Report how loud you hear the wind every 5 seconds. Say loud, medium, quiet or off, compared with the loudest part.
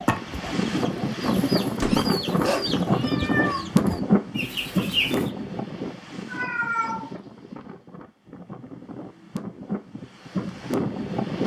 loud, medium, loud.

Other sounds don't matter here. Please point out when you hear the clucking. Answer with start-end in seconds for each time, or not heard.
0.0-5.3.